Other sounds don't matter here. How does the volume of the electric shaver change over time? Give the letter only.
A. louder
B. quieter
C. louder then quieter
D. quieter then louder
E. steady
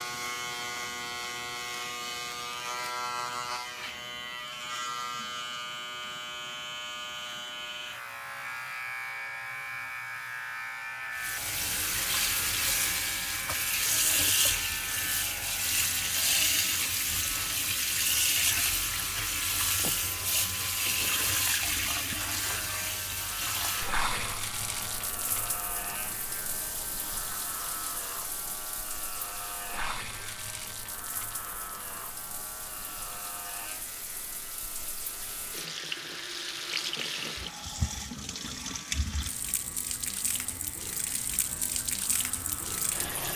B.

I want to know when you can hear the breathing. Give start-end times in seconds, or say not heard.
not heard.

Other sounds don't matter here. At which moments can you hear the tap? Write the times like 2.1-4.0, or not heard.
11.2-43.3.